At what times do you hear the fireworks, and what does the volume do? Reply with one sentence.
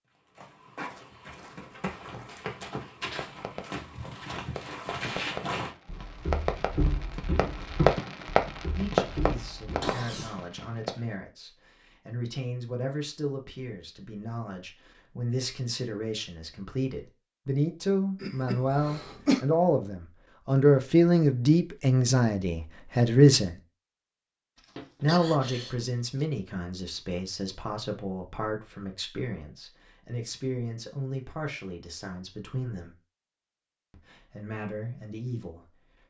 The fireworks can be heard from 3.0 to 11.1 s, getting louder then quieter.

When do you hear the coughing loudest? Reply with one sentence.
The volume of the coughing peaks at 19 seconds.